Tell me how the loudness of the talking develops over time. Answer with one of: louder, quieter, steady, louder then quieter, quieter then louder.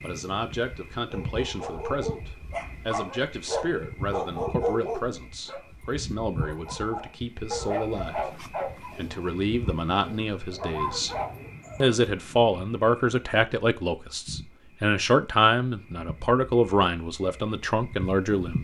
louder.